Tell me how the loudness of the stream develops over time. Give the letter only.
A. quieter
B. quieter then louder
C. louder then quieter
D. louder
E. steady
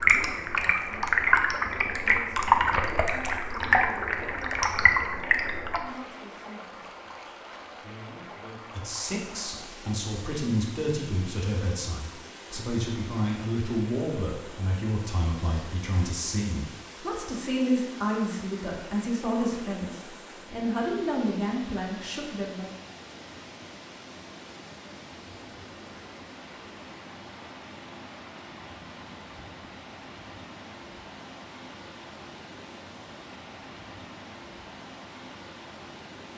A.